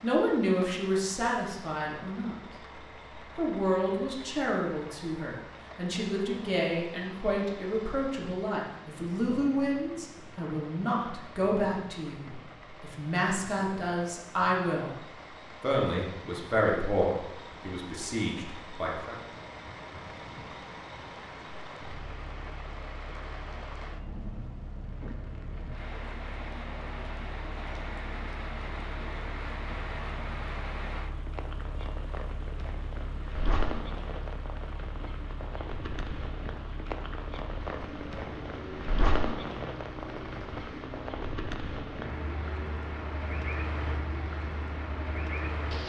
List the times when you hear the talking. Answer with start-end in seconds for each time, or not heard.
0.0-2.4, 3.4-14.9, 15.6-19.1.